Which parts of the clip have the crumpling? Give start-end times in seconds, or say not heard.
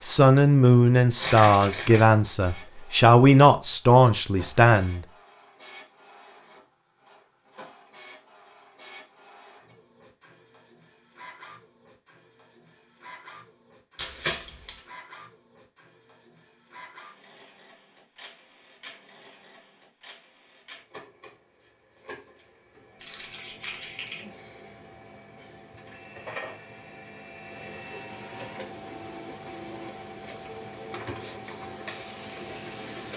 1.1-2.0, 13.9-14.8, 23.0-24.2.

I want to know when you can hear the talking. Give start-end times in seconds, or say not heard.
0.0-5.0.